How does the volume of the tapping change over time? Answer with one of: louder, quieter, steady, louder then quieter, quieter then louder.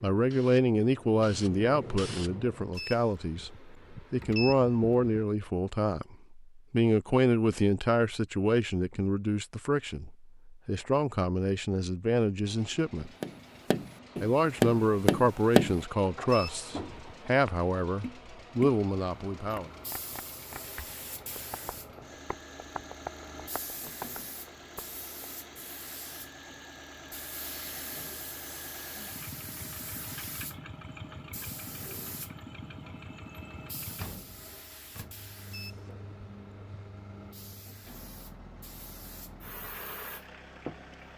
quieter.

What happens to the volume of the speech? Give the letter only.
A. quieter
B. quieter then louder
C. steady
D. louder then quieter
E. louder
C.